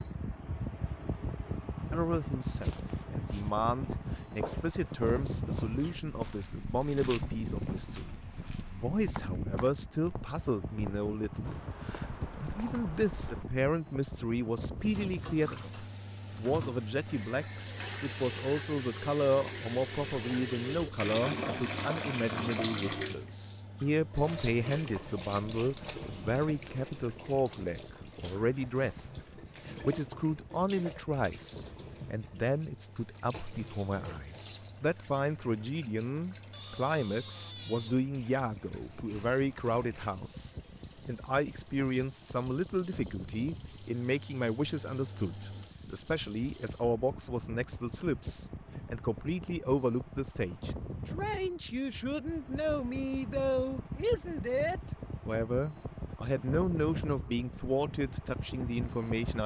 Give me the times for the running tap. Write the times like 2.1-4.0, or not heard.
14.8-46.9.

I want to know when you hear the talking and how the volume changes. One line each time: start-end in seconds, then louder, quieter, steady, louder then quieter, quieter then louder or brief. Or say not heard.
1.9-59.4 steady.